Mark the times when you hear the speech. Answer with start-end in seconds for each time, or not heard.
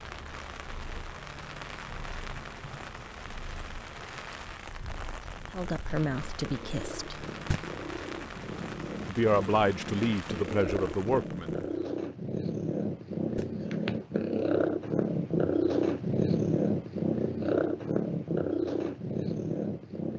5.5-7.2, 9.1-11.5.